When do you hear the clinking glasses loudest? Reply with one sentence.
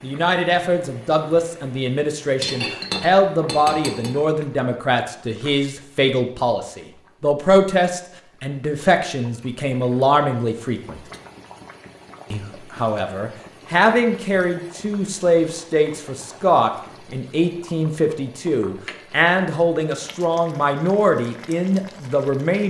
The loudest moment of the clinking glasses is at 3 seconds.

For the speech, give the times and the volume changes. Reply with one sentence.
The speech can be heard from 0.0 to 11.0 s, at a steady volume; and from 12.3 to 22.6 s, at a steady volume.